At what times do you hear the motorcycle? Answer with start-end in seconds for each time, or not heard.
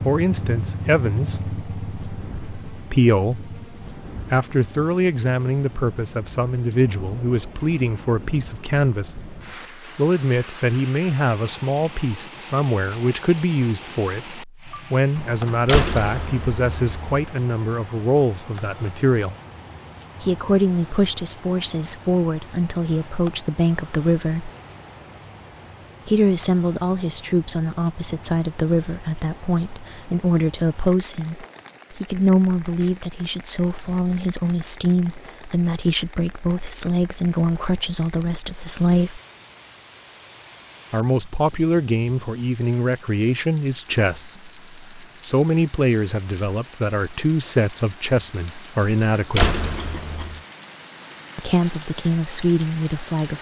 0.0-3.7.